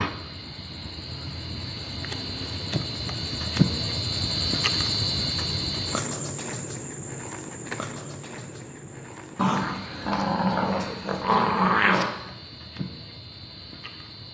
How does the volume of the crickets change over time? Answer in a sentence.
The volume of the crickets goes up, then down.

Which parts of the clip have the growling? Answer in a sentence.
You can hear the growling from 9.3 to 12.2 s.